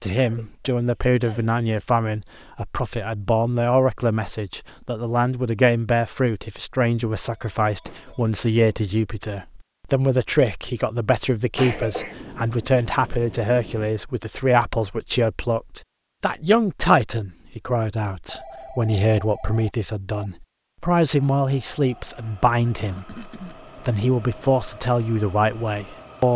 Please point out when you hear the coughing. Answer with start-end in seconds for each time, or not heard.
0.1-1.6, 11.6-12.2, 22.8-23.6.